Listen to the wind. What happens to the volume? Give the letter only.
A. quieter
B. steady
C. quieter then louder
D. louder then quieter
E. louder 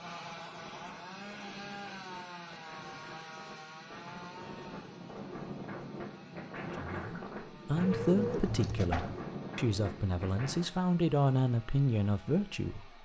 E.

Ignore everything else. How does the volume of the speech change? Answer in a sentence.
The loudness of the speech goes down, then up.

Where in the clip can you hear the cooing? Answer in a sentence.
You can hear the cooing from 7.8 to 9.2 s.